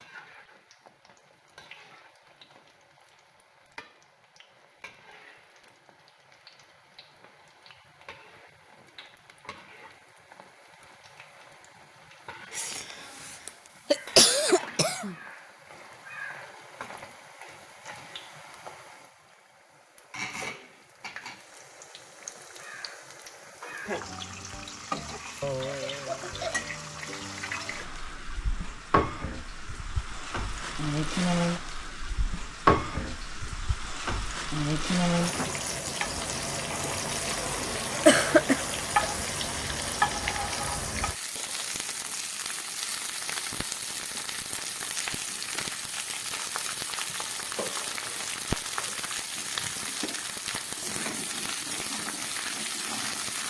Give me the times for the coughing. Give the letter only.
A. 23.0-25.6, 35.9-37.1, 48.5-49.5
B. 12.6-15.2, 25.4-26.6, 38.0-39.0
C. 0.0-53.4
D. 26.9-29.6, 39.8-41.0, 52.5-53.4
B.